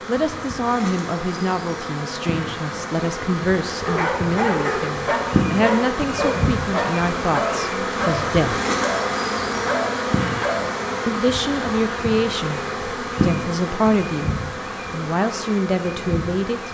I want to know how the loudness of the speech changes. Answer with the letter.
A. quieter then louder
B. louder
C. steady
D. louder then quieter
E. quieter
C.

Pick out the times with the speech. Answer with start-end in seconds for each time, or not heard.
0.1-8.6, 11.1-16.7.